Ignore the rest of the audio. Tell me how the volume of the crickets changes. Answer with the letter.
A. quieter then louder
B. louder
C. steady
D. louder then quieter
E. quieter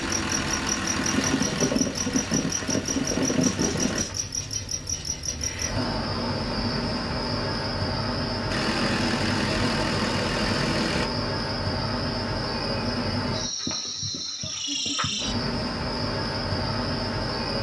C.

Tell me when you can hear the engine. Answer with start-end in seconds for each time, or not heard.
0.0-4.0, 8.4-11.1.